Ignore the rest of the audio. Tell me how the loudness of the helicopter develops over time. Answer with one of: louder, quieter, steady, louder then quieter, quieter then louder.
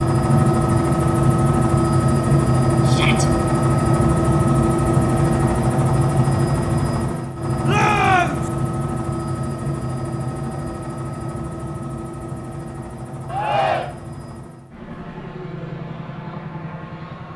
quieter.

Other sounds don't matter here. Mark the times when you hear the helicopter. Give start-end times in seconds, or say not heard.
0.0-17.3.